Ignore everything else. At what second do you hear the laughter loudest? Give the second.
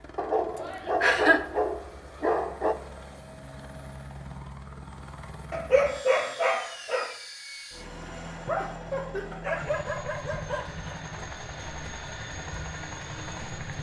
1 s.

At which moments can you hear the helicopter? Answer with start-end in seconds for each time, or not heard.
0.0-13.7.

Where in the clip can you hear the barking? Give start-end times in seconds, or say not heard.
0.1-2.8, 5.5-7.2, 9.3-10.9.